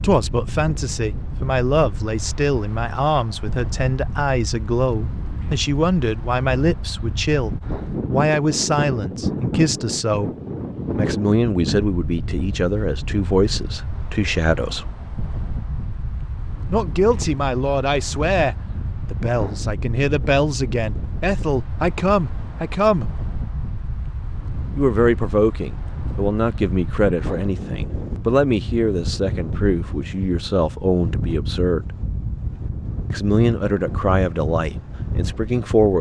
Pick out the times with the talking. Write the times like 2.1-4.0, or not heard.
0.0-10.3, 10.9-14.9, 16.7-23.1, 24.8-31.9, 33.1-35.9.